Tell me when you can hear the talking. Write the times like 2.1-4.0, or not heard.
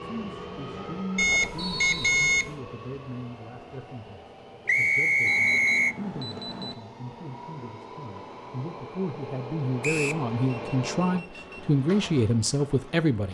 0.0-13.2.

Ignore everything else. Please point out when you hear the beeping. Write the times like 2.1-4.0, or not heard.
1.1-2.5, 5.2-6.8, 10.4-11.8.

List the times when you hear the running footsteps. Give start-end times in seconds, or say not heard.
not heard.